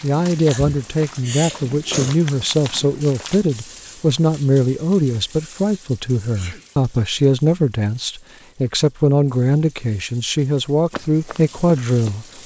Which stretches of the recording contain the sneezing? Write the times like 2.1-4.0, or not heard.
0.5-2.1, 6.3-6.8.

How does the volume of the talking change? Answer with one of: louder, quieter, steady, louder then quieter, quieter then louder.
steady.